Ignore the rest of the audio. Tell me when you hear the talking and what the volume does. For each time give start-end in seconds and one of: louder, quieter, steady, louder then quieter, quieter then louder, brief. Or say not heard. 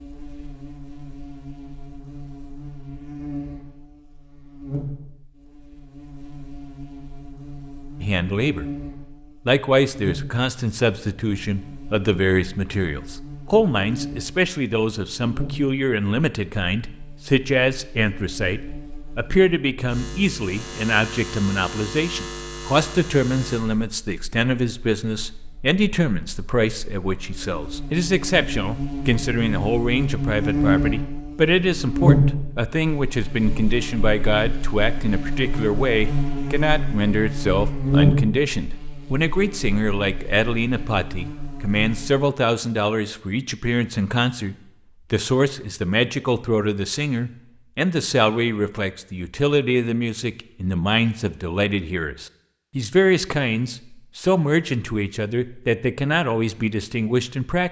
8.0-8.7 brief
9.4-57.6 steady.